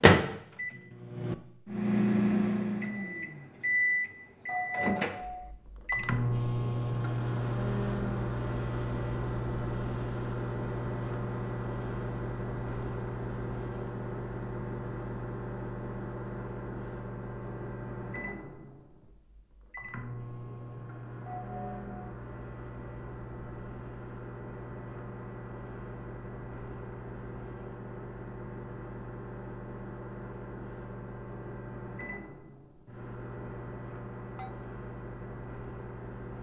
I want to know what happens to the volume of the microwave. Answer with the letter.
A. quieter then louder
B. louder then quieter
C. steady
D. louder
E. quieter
E.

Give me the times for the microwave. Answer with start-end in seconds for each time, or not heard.
0.0-36.3.